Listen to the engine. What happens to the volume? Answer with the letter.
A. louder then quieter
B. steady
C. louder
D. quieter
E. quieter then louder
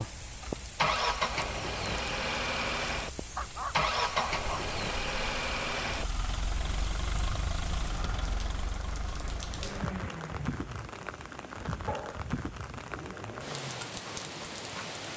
D.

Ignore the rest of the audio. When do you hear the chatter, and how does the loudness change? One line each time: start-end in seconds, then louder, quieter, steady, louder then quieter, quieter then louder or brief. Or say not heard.
not heard.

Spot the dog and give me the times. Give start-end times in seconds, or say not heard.
3.3-4.7, 11.8-12.9.